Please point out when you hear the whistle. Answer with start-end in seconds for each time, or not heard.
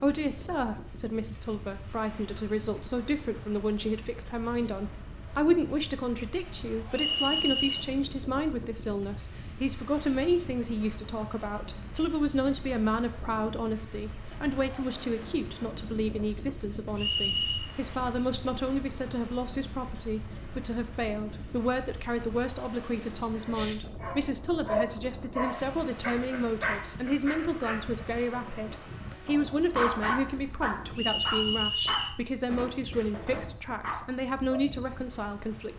6.9-7.8, 16.9-17.7, 30.9-32.1.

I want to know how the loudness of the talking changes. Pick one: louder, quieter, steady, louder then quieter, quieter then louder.
steady.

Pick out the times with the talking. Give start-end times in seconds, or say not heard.
0.0-35.7.